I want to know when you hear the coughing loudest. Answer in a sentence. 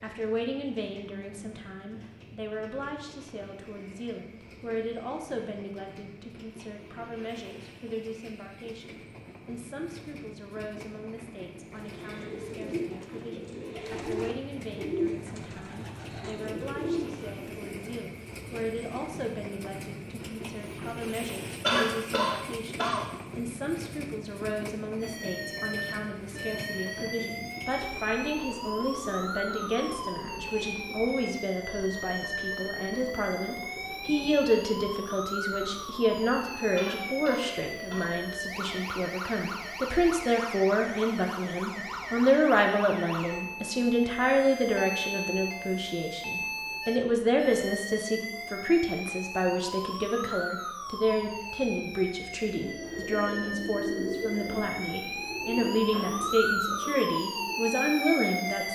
The volume of the coughing peaks at 22 seconds.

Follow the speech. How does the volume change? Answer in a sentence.
The volume of the speech goes up.